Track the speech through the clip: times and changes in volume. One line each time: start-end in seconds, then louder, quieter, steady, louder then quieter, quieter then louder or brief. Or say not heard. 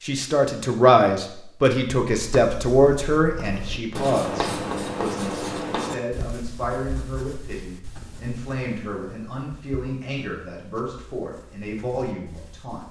0.0-12.8 quieter.